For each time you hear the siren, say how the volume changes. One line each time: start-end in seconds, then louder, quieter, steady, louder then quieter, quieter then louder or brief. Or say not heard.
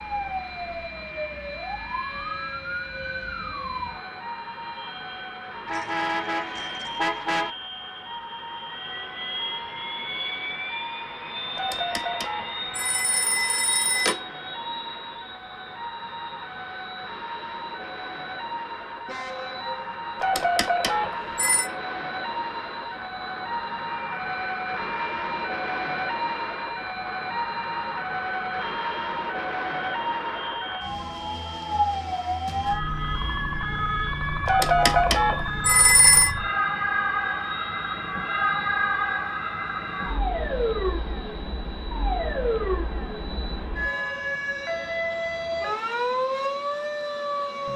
0.0-47.7 louder.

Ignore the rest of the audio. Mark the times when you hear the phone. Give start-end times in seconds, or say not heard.
11.6-14.2, 20.2-21.7, 34.5-36.3.